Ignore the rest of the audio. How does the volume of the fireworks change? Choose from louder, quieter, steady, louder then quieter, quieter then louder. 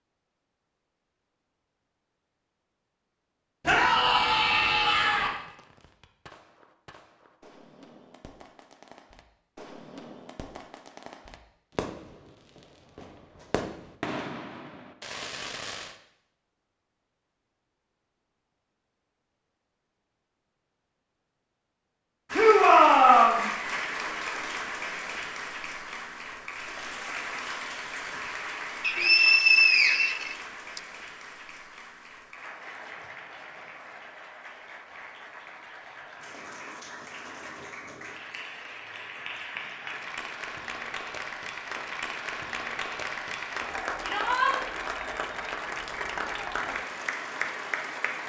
louder.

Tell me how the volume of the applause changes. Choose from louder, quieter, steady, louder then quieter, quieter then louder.
quieter then louder.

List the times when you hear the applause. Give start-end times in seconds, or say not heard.
22.2-48.2.